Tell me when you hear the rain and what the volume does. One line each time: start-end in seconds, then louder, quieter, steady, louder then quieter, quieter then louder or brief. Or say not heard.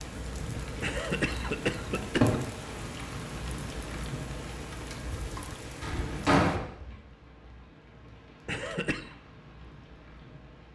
0.0-10.7 quieter.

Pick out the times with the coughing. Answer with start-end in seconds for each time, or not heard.
0.8-2.4, 8.4-9.2.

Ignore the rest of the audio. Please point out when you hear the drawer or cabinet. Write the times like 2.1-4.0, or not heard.
1.9-2.4, 5.8-6.6.